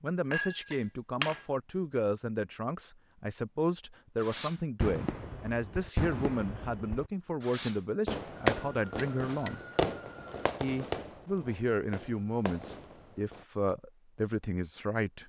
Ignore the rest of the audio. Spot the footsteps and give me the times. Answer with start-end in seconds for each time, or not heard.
not heard.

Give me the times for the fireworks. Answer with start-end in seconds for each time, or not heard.
4.2-13.4.